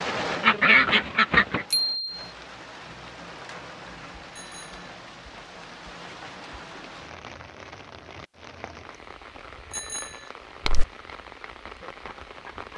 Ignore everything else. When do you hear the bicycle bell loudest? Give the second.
2 s.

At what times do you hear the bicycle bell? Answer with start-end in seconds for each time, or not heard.
1.7-2.2, 4.3-4.8, 9.7-10.3.